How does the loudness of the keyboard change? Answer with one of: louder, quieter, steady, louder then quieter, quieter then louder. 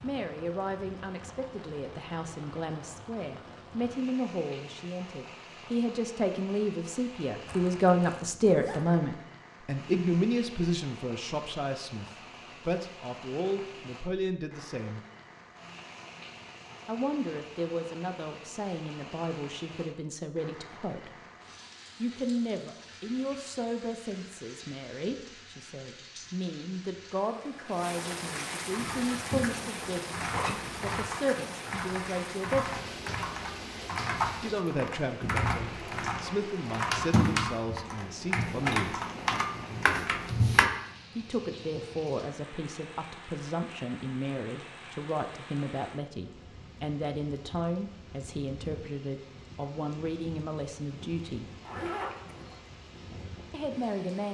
louder.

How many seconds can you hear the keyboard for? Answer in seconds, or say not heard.
12 s.